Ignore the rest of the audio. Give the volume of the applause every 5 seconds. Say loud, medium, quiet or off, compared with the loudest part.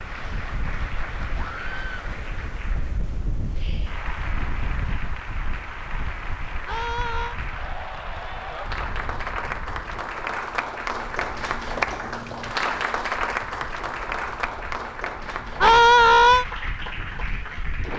medium, medium, loud, medium.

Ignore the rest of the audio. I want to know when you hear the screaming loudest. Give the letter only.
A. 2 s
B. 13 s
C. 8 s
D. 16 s
D.